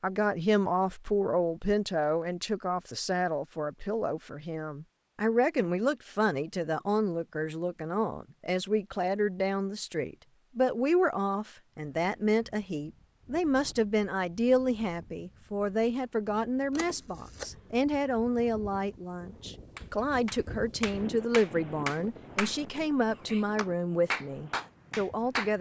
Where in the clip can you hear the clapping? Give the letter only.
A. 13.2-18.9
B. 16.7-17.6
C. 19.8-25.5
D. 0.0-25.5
C.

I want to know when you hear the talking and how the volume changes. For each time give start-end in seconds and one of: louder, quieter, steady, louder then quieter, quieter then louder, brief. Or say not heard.
0.0-25.5 steady.